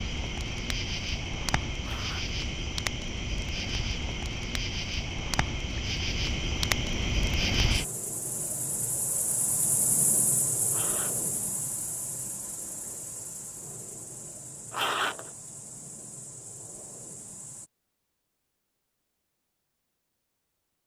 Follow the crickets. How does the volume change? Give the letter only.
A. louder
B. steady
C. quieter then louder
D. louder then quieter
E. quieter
E.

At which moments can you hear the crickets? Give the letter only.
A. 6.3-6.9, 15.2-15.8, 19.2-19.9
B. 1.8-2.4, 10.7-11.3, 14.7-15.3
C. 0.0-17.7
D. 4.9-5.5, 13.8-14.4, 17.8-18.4
C.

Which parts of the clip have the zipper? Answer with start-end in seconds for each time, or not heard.
1.8-2.4, 10.7-11.3, 14.7-15.3.